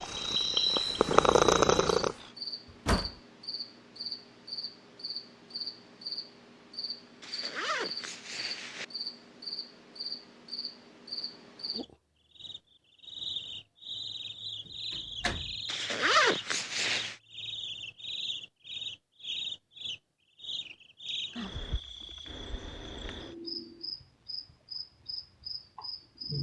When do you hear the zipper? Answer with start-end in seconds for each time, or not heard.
7.2-8.8, 15.7-17.1.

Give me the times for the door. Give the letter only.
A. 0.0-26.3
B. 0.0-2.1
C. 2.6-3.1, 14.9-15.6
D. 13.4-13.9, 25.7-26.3
C.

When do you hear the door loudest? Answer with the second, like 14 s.
3 s.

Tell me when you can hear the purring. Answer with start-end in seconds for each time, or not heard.
0.0-2.1.